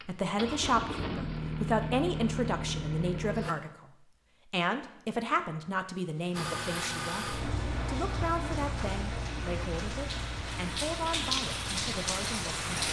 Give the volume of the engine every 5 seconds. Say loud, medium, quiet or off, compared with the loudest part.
loud, loud, medium.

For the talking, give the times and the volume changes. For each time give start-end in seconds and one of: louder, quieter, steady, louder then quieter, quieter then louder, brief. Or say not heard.
0.0-12.7 quieter.